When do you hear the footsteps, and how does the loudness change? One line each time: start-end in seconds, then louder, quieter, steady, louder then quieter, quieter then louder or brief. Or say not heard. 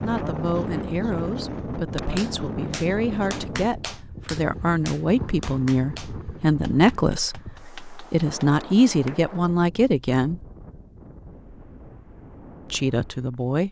not heard.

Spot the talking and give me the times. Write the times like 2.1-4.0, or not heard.
0.0-10.4, 12.7-13.6.